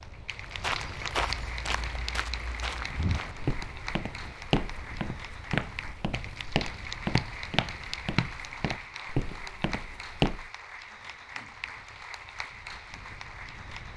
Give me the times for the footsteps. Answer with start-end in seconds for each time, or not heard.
0.4-10.5.